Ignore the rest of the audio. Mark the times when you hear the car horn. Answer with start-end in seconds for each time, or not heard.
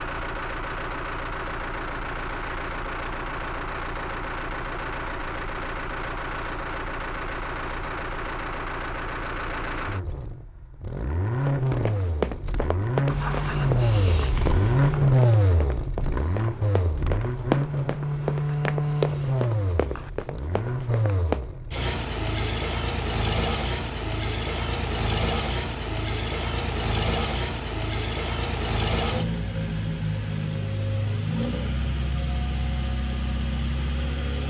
not heard.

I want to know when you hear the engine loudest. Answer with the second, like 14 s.
15 s.